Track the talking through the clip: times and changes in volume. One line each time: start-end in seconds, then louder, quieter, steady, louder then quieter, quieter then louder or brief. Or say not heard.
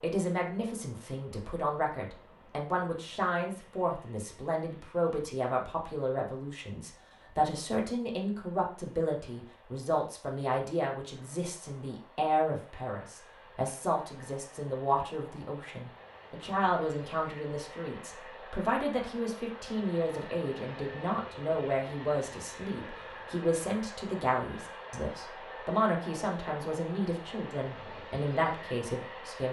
0.0-29.4 steady.